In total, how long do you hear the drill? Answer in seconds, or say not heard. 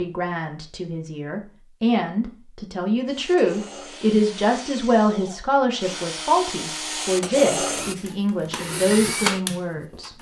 7 s.